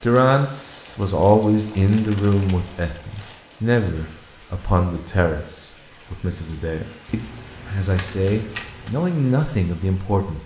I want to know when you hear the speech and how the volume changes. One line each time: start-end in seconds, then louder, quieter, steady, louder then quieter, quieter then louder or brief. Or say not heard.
0.0-10.4 quieter then louder.